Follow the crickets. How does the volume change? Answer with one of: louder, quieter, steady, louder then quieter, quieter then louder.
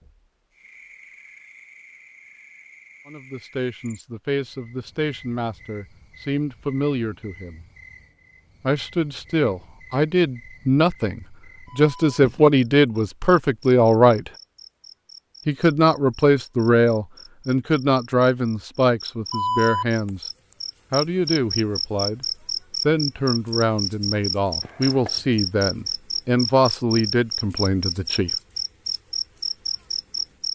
louder.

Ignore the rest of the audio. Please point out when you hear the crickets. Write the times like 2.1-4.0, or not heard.
0.0-30.5.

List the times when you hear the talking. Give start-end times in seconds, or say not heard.
3.0-7.7, 8.6-14.3, 15.4-20.2, 20.9-22.2, 22.9-28.4.